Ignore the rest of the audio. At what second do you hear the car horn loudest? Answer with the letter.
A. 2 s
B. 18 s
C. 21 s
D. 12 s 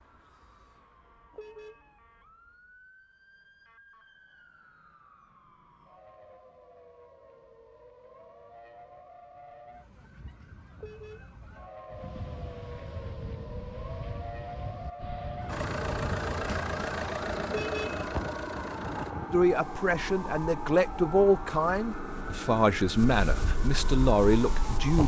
B.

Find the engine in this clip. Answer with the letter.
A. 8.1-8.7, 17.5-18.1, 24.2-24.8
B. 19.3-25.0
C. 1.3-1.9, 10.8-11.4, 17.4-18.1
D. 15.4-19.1
D.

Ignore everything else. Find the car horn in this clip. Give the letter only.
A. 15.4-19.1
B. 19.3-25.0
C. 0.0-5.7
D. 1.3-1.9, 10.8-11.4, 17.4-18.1
D.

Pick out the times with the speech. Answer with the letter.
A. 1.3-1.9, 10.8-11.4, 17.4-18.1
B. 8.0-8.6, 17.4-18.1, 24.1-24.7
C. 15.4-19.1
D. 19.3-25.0
D.